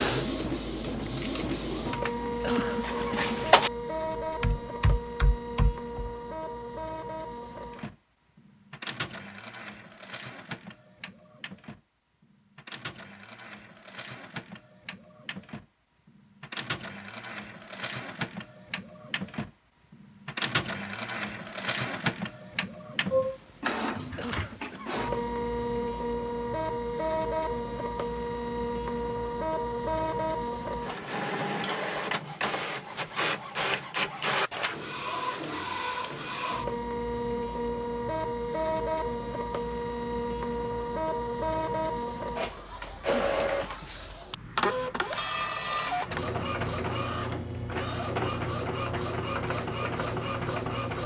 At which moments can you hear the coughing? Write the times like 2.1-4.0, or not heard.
2.4-3.2, 24.1-25.0, 43.0-43.9.